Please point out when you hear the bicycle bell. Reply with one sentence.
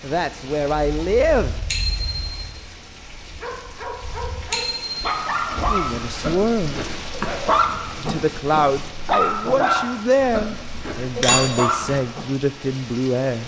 The bicycle bell can be heard from 1.7 to 2.2 s, from 4.5 to 5.0 s and from 11.2 to 12.0 s.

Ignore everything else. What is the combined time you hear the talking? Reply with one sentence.
You can hear the talking for 8 seconds altogether.